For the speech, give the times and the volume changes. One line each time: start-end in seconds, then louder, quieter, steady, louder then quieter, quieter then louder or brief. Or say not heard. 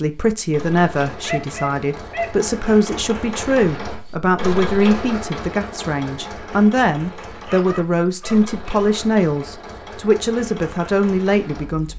0.0-11.9 steady.